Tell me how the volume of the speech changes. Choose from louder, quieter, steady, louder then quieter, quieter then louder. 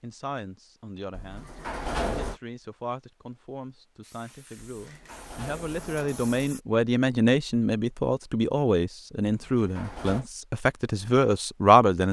louder.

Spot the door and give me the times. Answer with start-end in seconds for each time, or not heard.
1.1-2.4, 4.6-6.5, 9.2-10.2.